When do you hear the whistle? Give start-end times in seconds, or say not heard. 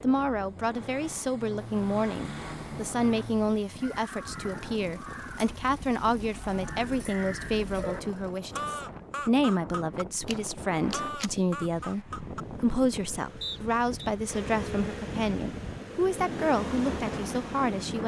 13.4-14.1.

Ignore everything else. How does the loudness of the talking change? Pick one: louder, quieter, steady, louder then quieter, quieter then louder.
steady.